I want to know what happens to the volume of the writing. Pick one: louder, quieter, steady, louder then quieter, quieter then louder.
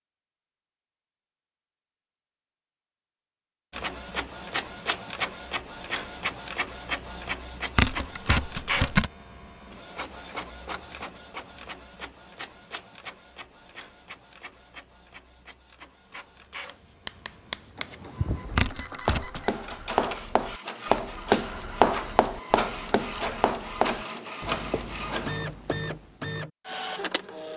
louder then quieter.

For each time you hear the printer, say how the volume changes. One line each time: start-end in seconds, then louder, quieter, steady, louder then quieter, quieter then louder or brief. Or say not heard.
3.7-27.5 quieter then louder.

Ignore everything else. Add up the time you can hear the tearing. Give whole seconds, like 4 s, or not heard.
2 s.